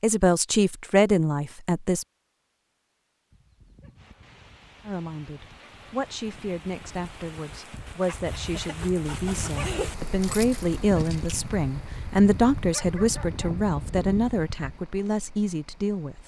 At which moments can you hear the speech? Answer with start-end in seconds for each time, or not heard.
0.0-2.0, 4.8-16.2.